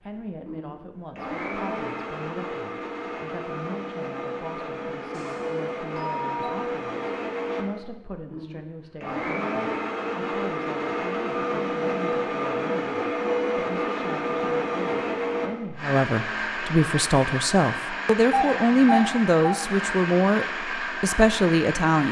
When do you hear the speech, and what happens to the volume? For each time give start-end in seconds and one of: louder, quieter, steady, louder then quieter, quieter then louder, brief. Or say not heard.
0.0-22.0 louder.